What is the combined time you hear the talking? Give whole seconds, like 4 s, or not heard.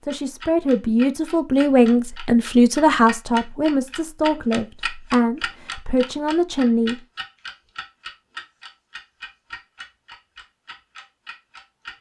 7 s.